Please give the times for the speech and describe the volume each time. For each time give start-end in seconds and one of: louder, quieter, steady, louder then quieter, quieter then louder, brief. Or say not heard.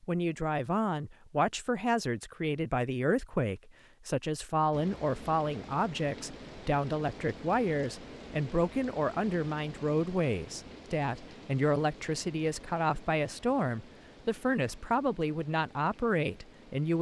0.0-16.9 steady.